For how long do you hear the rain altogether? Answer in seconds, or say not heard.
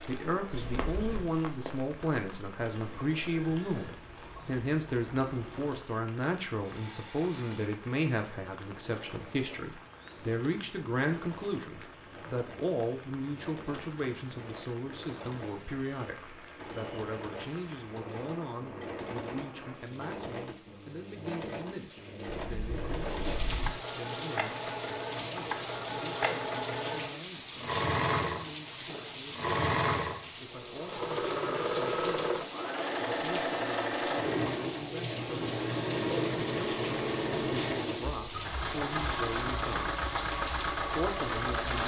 42 s.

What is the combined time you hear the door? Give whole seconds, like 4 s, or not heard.
2 s.